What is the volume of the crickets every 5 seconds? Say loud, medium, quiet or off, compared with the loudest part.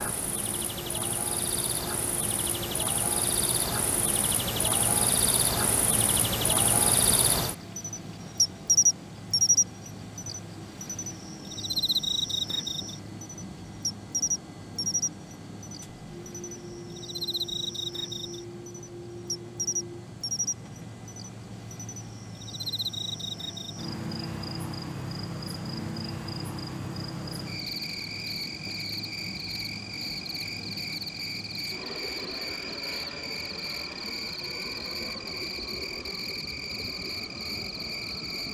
medium, loud, medium, medium, medium, medium, medium, medium.